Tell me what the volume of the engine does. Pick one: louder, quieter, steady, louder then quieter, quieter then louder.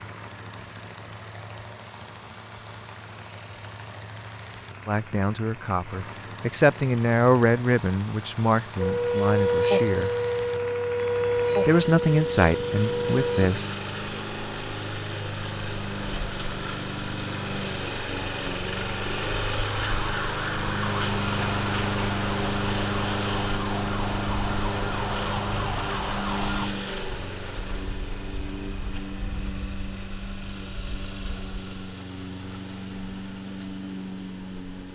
louder then quieter.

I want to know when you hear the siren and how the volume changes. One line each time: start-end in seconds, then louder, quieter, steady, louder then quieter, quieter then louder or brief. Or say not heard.
8.8-13.5 quieter
19.6-26.7 steady.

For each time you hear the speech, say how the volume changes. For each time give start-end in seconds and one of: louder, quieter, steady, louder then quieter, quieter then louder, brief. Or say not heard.
4.8-10.1 louder then quieter
11.7-13.8 brief.